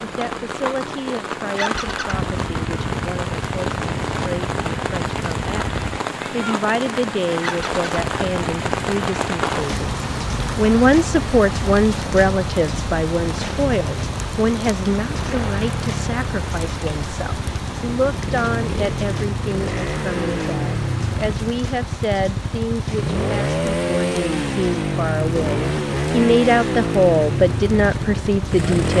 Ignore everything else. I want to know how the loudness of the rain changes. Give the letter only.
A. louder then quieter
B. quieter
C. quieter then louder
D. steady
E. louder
B.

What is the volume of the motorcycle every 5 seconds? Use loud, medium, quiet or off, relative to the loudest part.
medium, medium, medium, medium, loud, loud.